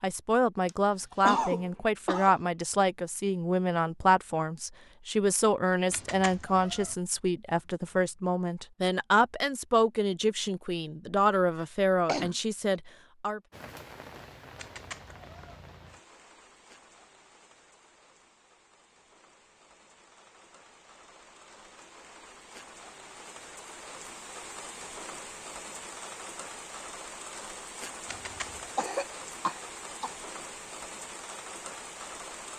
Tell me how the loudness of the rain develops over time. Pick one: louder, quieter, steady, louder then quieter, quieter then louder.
quieter then louder.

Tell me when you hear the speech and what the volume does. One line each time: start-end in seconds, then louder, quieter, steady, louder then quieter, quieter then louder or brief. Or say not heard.
0.0-13.4 steady.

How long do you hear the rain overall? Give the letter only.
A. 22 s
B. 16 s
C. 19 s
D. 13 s
C.